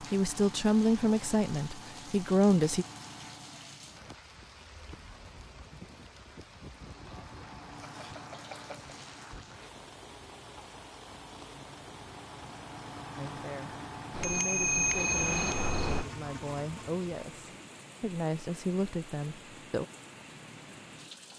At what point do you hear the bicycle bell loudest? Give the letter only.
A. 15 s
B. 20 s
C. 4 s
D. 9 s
A.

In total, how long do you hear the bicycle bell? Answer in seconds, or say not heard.
3 s.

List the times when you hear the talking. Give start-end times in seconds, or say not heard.
0.0-2.9, 13.2-19.9.